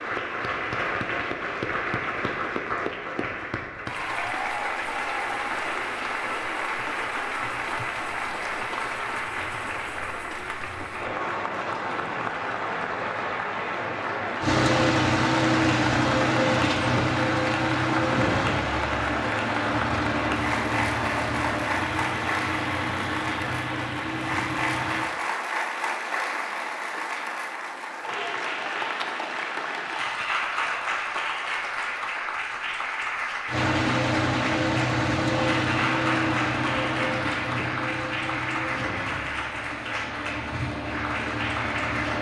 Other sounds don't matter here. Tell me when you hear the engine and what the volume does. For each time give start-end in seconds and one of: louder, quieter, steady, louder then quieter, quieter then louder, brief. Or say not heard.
14.4-25.1 quieter
33.5-42.1 quieter.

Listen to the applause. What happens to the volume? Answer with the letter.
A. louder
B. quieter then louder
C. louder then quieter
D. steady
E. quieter
D.